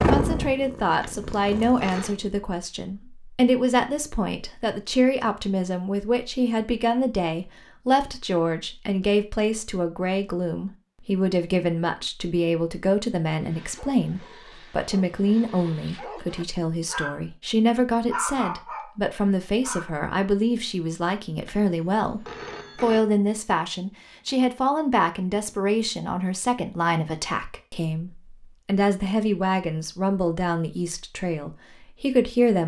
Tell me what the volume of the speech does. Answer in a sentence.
The volume of the speech stays about the same.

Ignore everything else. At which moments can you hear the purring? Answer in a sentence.
You can hear the purring from 0.0 to 2.4 s.